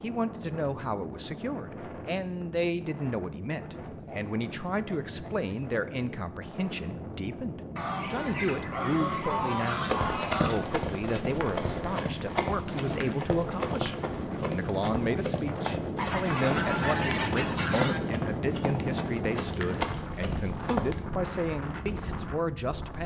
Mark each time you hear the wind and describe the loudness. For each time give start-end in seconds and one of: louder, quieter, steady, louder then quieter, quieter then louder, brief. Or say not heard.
0.0-23.0 louder.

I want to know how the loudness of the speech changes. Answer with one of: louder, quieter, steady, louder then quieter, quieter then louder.
steady.